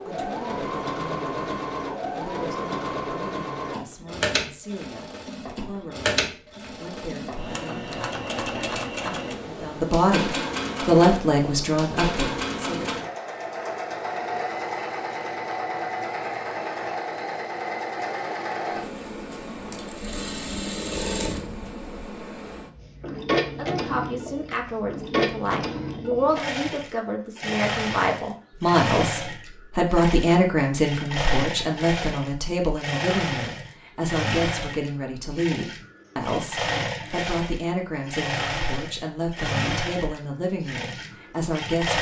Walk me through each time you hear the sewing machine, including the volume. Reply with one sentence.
You can hear the sewing machine from 0.0 to 41.9 s, at a steady volume.